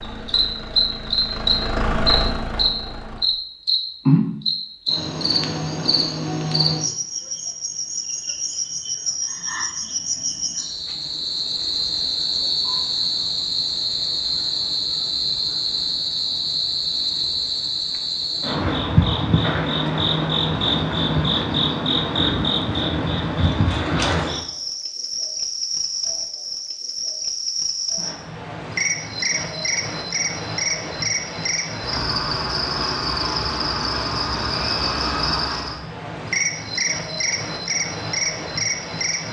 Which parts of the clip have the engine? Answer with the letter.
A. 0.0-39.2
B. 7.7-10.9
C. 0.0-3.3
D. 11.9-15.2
C.